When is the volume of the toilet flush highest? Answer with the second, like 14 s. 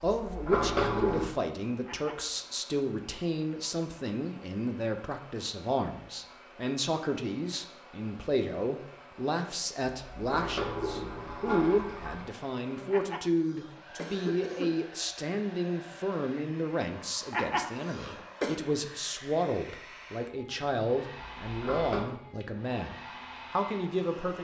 1 s.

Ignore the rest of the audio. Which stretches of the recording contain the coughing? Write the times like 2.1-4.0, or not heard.
1.9-2.4, 12.9-14.7, 17.3-18.6.